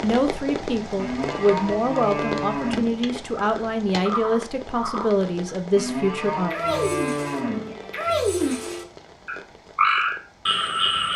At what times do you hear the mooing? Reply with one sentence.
You can hear the mooing from 0.9 to 3.0 s and from 5.8 to 7.8 s.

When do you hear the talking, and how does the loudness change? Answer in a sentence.
The talking can be heard from 0.0 to 6.5 s, at a steady volume.